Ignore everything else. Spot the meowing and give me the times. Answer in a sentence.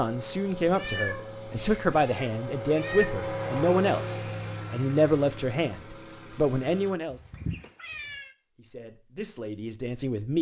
You can hear the meowing from 0.8 to 3.1 s and from 7.1 to 8.3 s.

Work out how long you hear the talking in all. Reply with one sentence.
You can hear the talking for 9 seconds altogether.